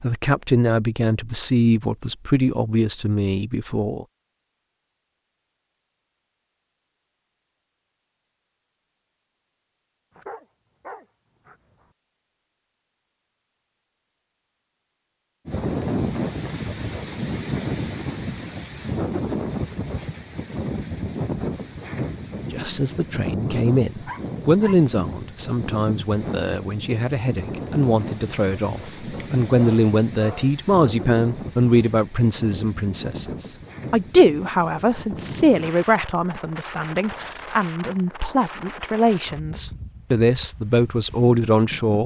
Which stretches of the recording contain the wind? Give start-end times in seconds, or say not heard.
15.4-42.0.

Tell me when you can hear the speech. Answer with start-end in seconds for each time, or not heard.
0.0-4.0, 22.5-42.0.